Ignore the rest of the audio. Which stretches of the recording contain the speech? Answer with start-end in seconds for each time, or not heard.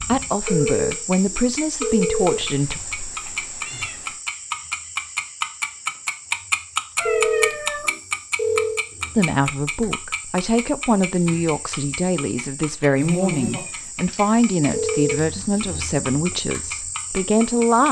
0.0-2.8, 9.2-17.8.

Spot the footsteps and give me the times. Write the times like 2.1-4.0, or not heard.
not heard.